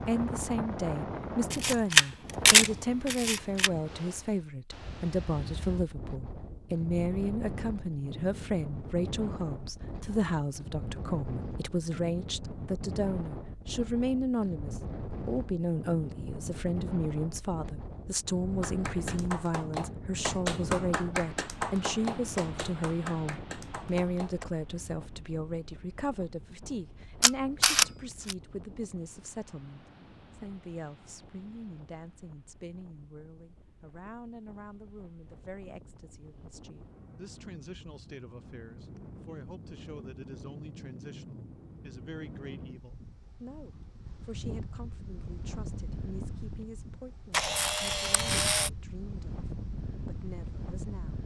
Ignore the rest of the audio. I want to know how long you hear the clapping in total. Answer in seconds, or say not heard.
6 s.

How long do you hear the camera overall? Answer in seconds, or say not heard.
5 s.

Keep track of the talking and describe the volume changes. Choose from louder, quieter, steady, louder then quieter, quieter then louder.
quieter.